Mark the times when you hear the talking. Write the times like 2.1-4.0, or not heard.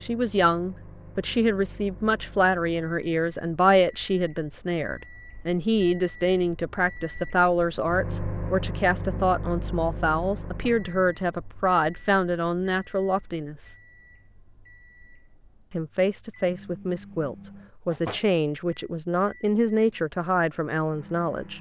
0.0-13.8, 15.7-21.5.